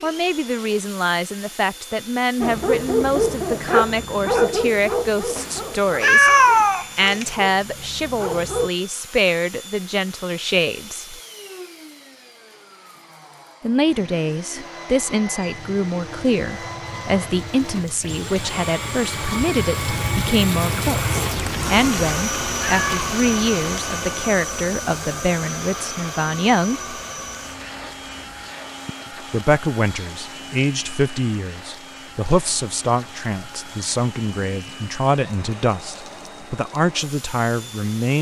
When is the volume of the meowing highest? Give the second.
6 s.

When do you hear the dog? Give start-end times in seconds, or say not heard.
2.4-8.7.